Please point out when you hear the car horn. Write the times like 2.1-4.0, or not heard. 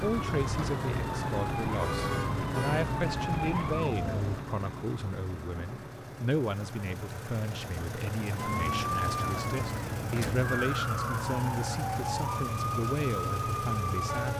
1.8-2.9.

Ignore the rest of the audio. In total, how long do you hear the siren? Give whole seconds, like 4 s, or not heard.
10 s.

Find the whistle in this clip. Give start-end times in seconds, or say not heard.
not heard.